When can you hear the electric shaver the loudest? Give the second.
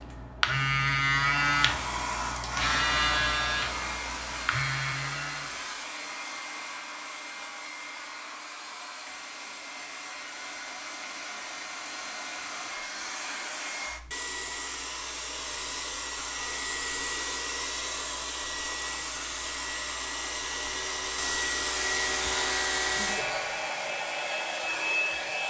1 s.